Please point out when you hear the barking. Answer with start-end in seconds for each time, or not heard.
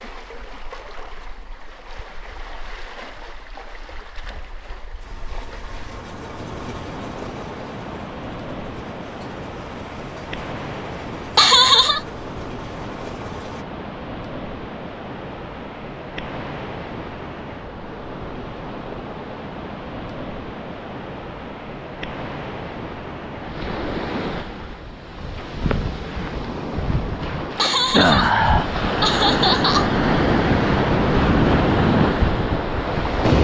not heard.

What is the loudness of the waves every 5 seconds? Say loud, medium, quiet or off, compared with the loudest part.
quiet, quiet, quiet, quiet, quiet, loud, loud.